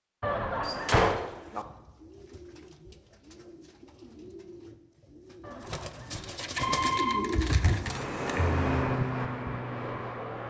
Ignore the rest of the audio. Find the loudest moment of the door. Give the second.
1 s.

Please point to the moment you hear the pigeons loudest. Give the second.
7 s.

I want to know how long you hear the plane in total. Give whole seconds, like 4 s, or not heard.
3 s.